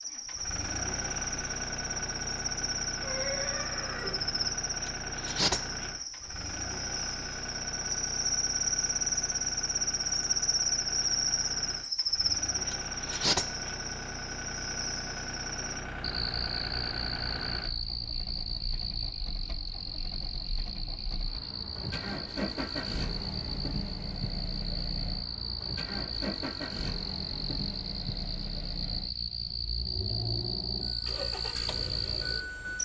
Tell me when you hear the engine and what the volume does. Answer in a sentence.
You can hear the engine from 0.0 to 32.7 s, at a steady volume.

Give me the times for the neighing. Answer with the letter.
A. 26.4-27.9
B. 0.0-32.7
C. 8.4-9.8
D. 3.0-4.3
D.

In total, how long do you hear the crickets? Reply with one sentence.
You can hear the crickets for 33 seconds altogether.